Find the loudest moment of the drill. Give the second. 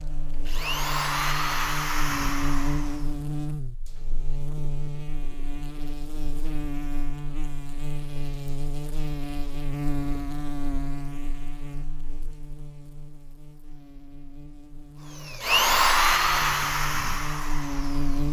16 s.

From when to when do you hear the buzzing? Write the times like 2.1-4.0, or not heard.
0.0-18.2.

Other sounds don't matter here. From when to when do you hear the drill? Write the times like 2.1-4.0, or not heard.
0.0-3.1, 15.2-18.2.